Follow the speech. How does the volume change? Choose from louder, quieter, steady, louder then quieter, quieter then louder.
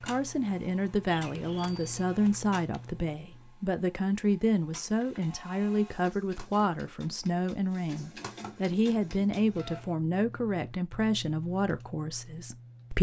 steady.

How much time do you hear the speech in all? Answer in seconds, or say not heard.
13 s.